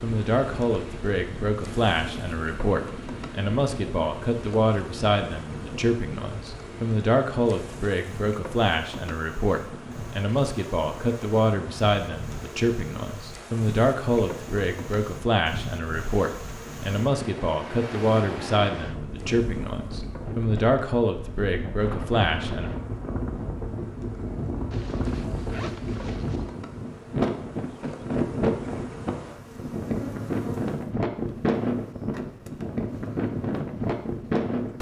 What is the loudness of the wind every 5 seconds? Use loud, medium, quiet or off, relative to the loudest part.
medium, quiet, quiet, medium, medium, loud, loud.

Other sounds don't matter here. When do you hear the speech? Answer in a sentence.
The speech can be heard from 0.0 to 22.7 s.